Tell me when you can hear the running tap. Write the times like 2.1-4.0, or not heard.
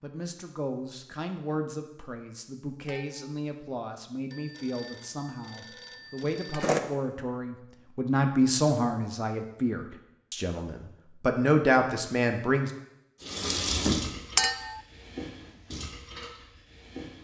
13.2-17.2.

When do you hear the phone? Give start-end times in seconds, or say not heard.
4.3-6.8.